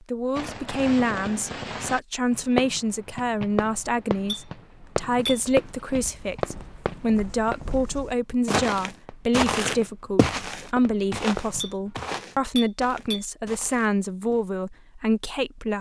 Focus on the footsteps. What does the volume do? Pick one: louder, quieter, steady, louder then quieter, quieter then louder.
louder then quieter.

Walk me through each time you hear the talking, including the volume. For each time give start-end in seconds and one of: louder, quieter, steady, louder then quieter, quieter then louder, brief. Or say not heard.
0.1-15.7 steady.